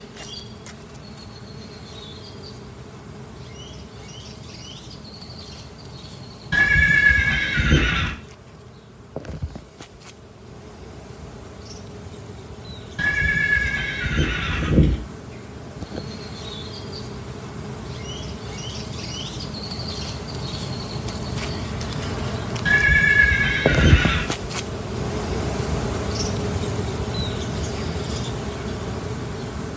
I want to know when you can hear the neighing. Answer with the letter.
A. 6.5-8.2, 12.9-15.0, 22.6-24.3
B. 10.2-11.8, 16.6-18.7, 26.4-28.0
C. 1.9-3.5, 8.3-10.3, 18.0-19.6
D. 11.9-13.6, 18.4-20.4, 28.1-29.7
A.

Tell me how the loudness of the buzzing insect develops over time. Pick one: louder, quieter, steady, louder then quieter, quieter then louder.
louder.